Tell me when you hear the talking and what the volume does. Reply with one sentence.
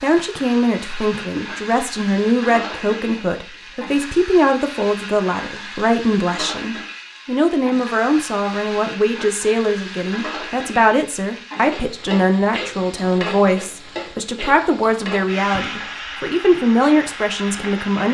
The talking can be heard from 0.0 to 18.0 s, at a steady volume.